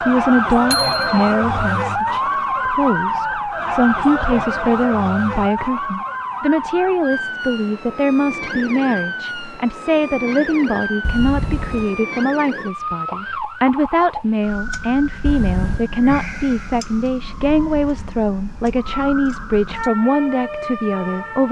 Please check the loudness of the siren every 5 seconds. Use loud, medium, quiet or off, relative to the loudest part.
loud, medium, medium, medium, medium.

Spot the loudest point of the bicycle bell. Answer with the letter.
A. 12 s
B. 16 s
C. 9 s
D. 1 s
D.